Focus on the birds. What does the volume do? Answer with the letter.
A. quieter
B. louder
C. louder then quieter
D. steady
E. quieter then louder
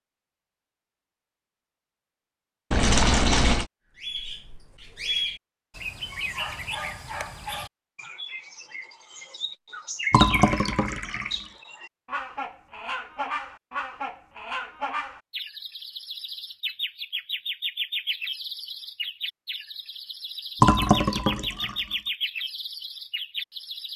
D.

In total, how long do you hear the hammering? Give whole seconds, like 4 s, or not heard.
not heard.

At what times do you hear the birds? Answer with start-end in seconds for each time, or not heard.
4.0-23.9.